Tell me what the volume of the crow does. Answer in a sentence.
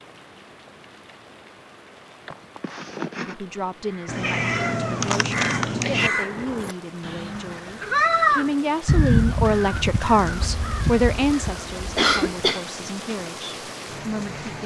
The loudness of the crow goes up, then down.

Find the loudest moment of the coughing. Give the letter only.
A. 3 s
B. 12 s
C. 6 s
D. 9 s
B.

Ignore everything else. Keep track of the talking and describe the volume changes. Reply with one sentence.
The loudness of the talking goes up, then down.